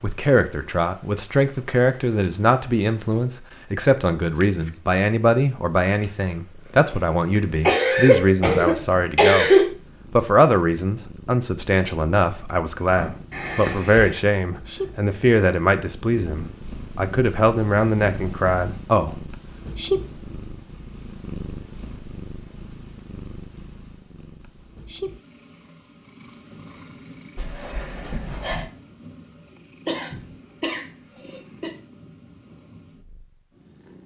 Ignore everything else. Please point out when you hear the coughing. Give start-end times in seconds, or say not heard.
7.7-9.7, 13.3-14.1, 29.9-31.7.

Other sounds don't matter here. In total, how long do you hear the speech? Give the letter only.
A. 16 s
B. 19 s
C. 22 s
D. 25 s
B.